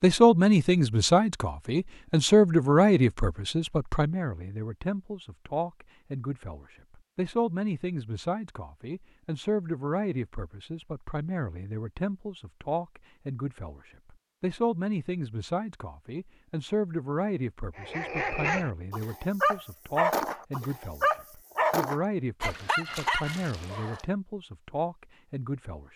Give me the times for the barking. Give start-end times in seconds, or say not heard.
17.8-24.1.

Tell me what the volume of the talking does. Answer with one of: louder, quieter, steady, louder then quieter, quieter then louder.
quieter.